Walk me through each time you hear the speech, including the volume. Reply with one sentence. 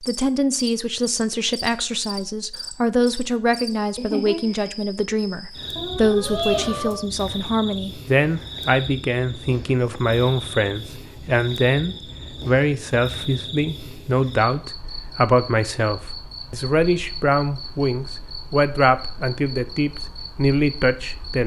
The speech can be heard from 0.0 to 21.4 s, at a steady volume.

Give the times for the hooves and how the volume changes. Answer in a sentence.
The hooves can't be heard in this clip.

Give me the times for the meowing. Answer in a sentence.
You can hear the meowing from 5.8 to 7.0 s.